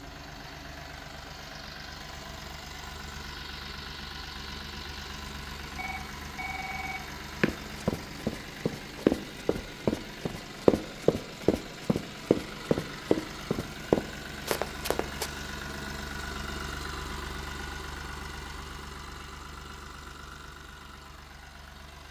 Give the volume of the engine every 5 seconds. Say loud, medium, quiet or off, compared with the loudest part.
loud, loud, loud, loud, medium.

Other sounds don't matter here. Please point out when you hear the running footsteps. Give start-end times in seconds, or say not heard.
7.4-15.3.